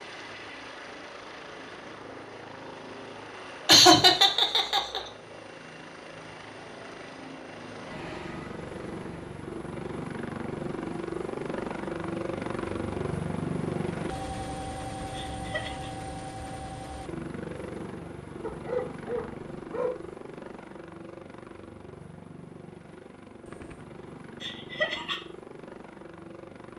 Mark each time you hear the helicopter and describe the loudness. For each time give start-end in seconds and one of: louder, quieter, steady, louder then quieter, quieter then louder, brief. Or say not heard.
0.0-26.7 louder then quieter.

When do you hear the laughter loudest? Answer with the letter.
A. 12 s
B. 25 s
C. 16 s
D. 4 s
D.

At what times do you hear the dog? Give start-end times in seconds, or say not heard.
18.4-20.1.